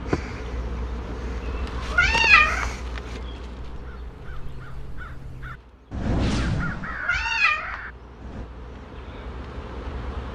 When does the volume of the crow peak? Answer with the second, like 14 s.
6 s.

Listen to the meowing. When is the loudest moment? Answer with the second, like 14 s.
2 s.